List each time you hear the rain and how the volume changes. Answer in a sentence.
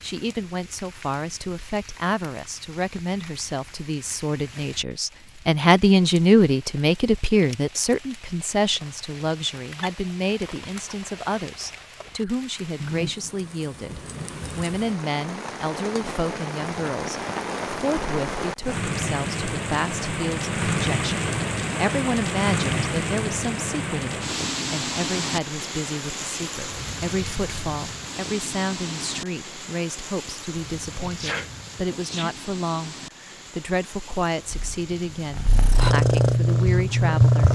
You can hear the rain from 0.0 to 37.5 s, getting louder then quieter.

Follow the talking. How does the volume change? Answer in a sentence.
The loudness of the talking goes down.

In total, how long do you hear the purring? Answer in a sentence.
You can hear the purring for 3 seconds altogether.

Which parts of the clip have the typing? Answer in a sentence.
The typing can't be heard in this clip.